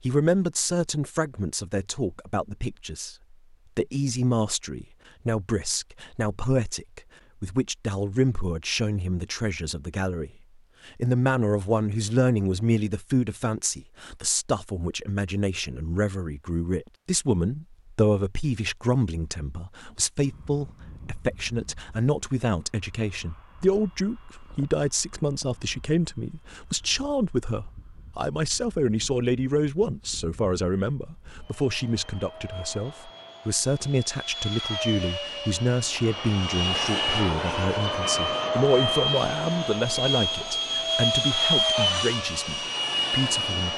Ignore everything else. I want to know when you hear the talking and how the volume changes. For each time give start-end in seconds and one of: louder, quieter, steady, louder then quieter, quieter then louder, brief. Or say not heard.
0.1-43.7 steady.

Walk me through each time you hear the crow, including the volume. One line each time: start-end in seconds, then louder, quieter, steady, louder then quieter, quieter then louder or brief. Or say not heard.
not heard.